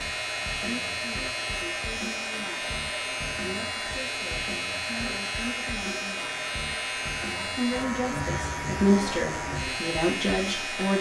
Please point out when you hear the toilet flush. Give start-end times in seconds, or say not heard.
not heard.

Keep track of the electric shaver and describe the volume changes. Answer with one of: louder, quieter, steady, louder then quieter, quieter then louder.
steady.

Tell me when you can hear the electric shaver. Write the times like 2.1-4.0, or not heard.
0.0-10.9.